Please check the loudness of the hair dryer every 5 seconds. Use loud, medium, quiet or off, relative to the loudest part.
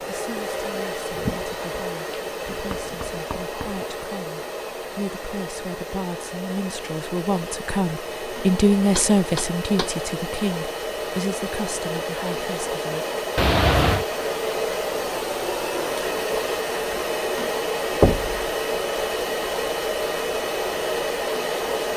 medium, medium, loud, loud, loud.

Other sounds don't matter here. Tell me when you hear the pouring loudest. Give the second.
14 s.